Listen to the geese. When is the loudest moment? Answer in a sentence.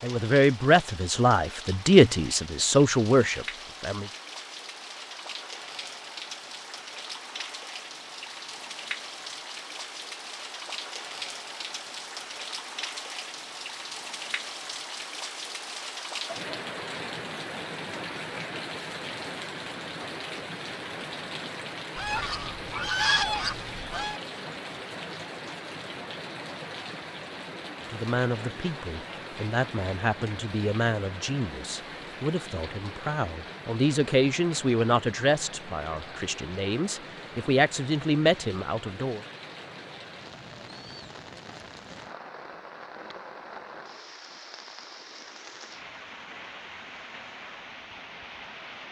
The loudest moment of the geese is at 23 seconds.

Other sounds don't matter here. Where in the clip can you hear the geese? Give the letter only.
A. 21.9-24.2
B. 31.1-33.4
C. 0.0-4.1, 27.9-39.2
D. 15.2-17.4
A.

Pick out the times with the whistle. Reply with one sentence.
You can't hear the whistle here.